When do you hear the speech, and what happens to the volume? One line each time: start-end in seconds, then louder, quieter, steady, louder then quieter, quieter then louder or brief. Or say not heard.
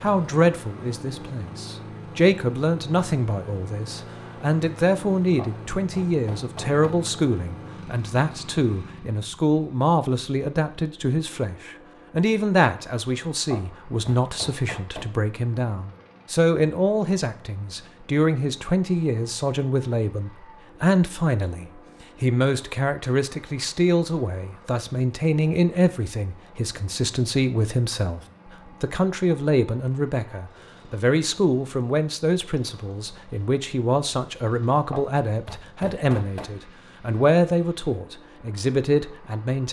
0.0-39.6 steady.